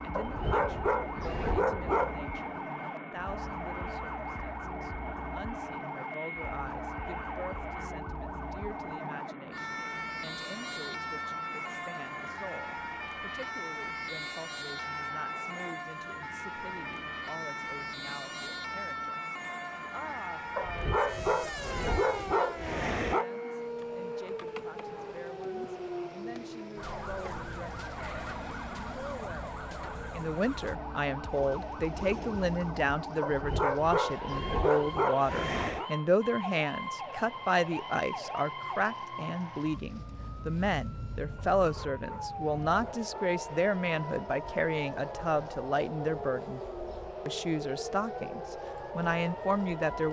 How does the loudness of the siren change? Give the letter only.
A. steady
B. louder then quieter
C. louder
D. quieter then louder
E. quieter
A.